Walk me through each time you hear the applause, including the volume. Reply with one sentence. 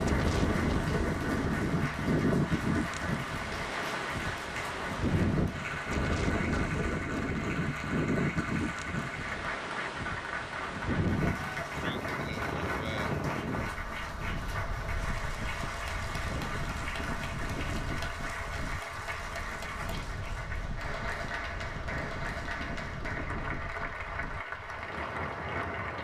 You can hear the applause from 0.0 to 25.9 s, at a steady volume.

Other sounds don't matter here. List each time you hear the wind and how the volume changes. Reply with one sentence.
The wind can be heard from 0.0 to 25.9 s, getting quieter.